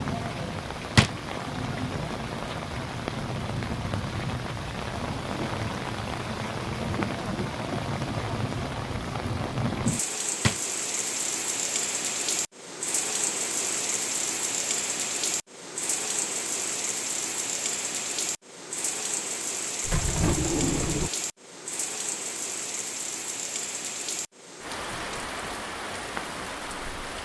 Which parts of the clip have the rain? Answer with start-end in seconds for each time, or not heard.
0.0-27.2.